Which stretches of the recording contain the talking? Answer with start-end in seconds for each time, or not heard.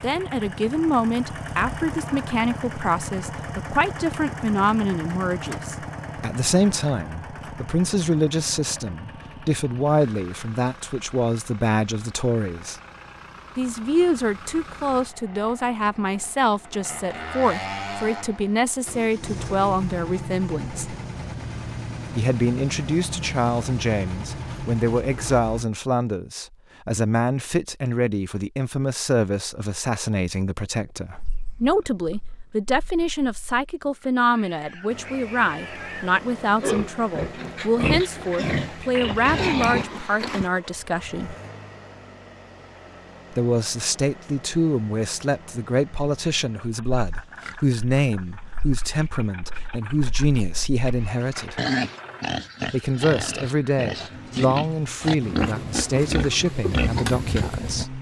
0.0-12.8, 13.6-20.9, 22.1-41.4, 43.3-51.6, 52.6-57.9.